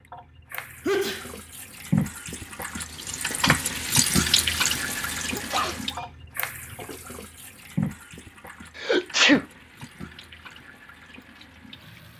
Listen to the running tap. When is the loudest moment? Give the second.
4 s.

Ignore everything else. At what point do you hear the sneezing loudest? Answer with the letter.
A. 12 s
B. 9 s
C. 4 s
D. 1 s
B.